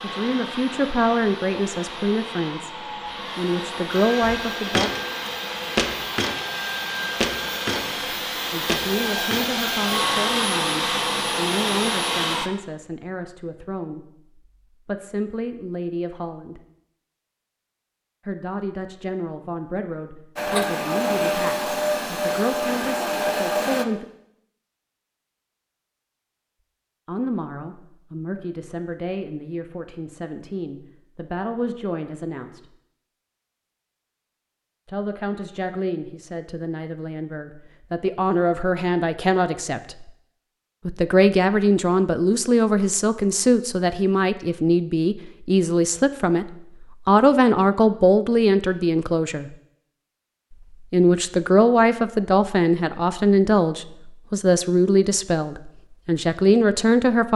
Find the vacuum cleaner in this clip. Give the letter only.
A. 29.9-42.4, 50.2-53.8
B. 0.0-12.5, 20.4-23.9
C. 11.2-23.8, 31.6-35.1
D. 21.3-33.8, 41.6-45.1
B.